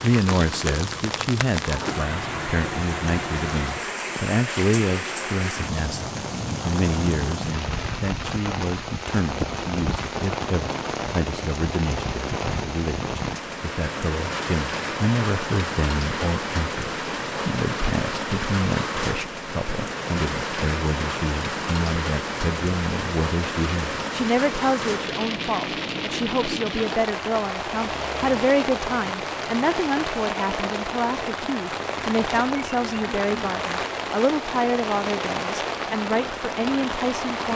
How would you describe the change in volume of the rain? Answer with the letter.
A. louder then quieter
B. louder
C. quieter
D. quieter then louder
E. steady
E.